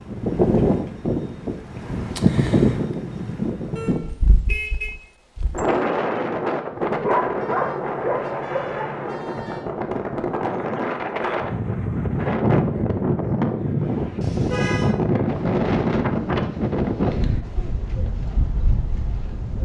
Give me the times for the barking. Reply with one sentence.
The barking can be heard from 6.7 to 8.9 s.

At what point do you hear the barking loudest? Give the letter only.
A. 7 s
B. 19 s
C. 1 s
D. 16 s
A.